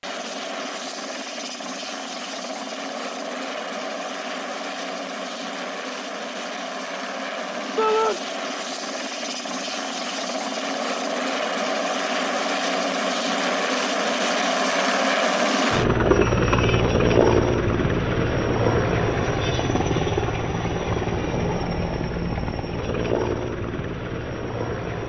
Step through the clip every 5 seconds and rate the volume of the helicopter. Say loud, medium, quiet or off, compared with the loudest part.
medium, medium, loud, loud, medium.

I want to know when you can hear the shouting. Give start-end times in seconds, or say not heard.
7.8-8.2.